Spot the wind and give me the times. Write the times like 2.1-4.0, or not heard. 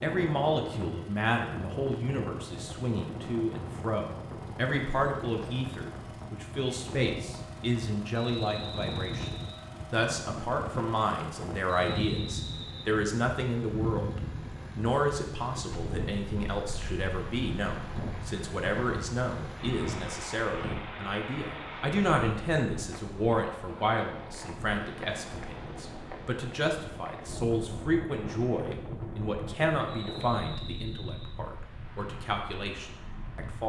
0.0-33.6.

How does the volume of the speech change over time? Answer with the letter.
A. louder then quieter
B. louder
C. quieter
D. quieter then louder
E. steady
E.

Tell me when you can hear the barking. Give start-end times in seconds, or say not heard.
not heard.